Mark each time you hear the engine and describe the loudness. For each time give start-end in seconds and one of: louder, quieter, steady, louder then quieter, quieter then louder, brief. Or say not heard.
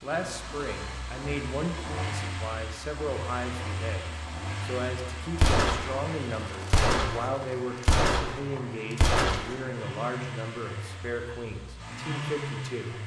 0.0-13.0 steady.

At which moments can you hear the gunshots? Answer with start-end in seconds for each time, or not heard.
5.3-9.6.